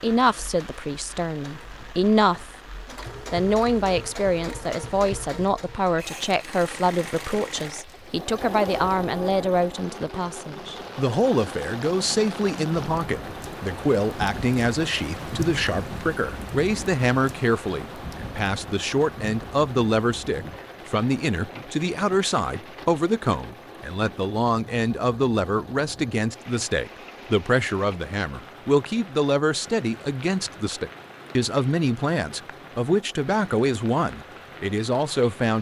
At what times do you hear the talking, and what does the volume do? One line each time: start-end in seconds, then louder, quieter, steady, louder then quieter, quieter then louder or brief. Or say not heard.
0.0-2.5 brief
3.3-35.5 steady.